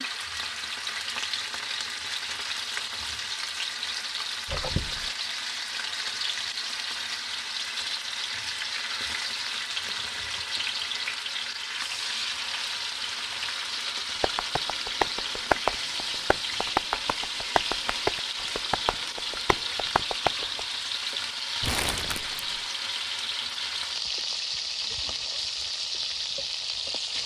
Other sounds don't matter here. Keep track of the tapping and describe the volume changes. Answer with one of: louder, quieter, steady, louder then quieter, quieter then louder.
quieter.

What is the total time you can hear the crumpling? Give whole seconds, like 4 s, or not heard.
2 s.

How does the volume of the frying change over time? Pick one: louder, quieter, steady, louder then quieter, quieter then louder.
steady.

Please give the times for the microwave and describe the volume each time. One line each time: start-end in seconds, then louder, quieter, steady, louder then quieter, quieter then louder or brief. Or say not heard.
not heard.